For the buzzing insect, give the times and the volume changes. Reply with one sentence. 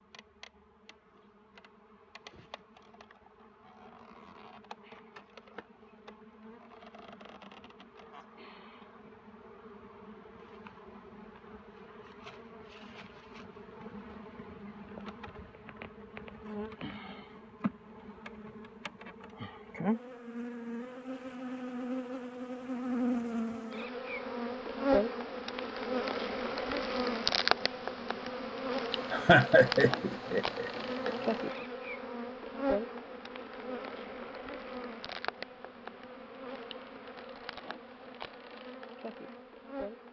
The buzzing insect can be heard from 0.0 to 40.0 s, getting louder then quieter.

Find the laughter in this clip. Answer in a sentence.
You can hear the laughter from 29.1 to 31.3 s.